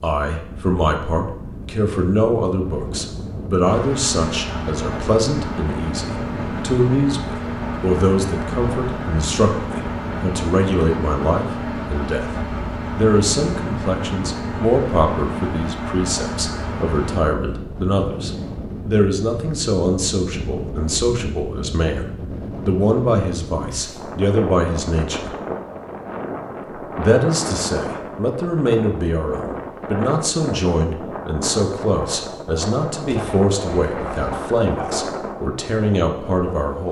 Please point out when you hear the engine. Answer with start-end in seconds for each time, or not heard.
3.6-17.2.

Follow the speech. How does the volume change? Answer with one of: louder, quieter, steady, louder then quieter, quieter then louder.
steady.